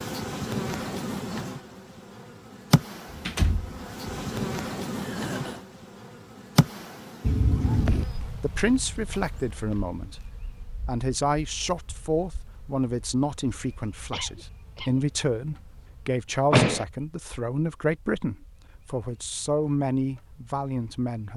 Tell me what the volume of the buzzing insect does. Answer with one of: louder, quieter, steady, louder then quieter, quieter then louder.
quieter.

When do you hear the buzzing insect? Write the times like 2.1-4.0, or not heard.
0.0-21.3.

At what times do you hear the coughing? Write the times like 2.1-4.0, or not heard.
5.0-5.7, 14.1-15.0.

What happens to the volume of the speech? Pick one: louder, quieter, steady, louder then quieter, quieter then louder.
steady.